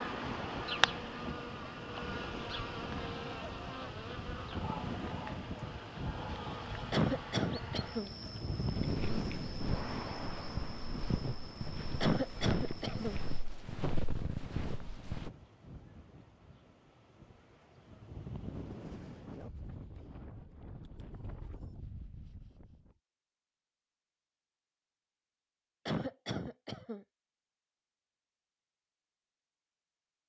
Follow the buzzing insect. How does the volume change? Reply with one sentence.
The volume of the buzzing insect goes down.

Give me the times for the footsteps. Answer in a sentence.
You can hear the footsteps from 8.8 to 15.3 s.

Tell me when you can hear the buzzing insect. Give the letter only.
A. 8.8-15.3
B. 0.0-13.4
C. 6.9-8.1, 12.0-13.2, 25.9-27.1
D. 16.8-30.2
B.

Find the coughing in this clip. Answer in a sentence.
The coughing can be heard from 6.9 to 8.1 s, from 12.0 to 13.2 s and from 25.9 to 27.1 s.